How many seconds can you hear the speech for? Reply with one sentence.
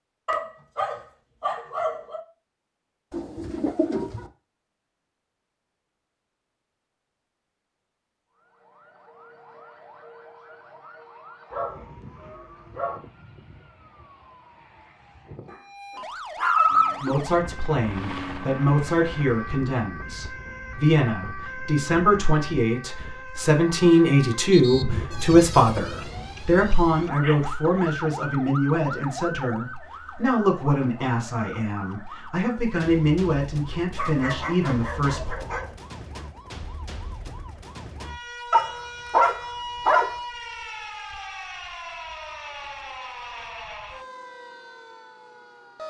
You can hear the speech for 18 seconds altogether.